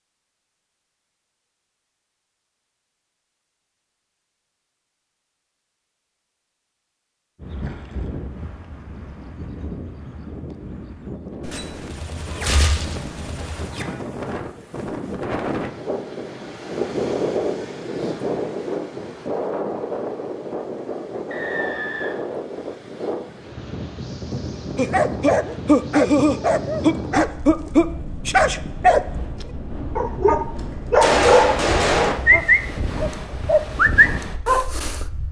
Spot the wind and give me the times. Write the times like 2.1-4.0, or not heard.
7.3-35.2.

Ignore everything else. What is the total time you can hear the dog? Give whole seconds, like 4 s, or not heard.
10 s.